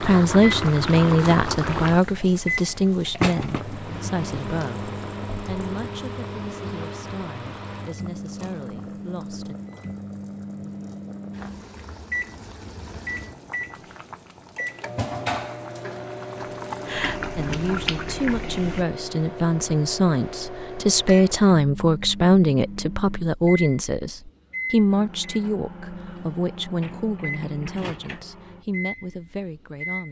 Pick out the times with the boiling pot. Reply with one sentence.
You can hear the boiling pot from 0.0 to 18.9 s.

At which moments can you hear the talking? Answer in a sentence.
The talking can be heard from 0.0 to 9.6 s and from 17.4 to 30.0 s.